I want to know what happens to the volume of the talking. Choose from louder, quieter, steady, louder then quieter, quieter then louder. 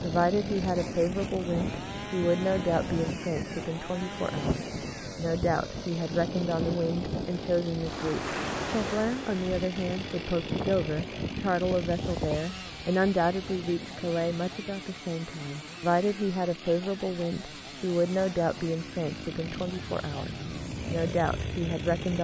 steady.